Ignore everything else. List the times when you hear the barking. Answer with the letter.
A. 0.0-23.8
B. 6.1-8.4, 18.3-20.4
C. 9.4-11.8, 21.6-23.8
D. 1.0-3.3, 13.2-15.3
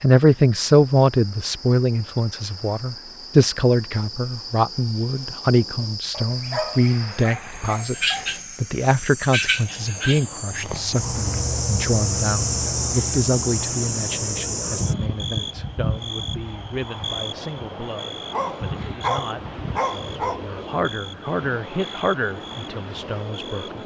B.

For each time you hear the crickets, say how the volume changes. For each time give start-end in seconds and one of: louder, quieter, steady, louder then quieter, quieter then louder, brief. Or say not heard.
0.0-23.8 louder then quieter.